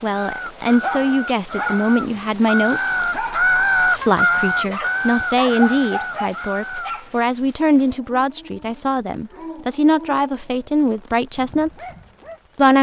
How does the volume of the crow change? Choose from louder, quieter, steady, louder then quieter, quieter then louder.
louder then quieter.